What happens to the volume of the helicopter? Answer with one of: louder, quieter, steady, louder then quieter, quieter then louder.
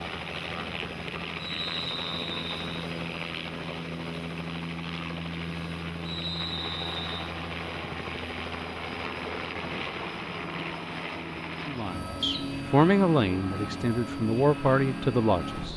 steady.